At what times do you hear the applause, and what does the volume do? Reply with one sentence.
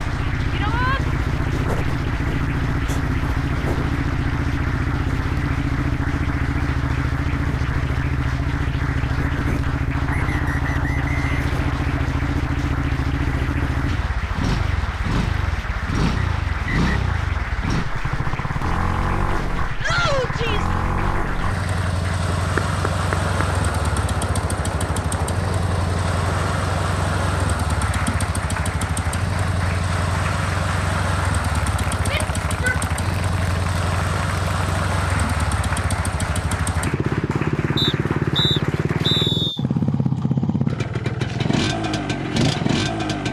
You can hear the applause from 0.0 to 39.3 s, at a steady volume.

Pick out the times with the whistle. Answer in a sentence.
The whistle can be heard from 10.1 to 12.1 s, from 16.1 to 16.8 s and from 37.8 to 39.6 s.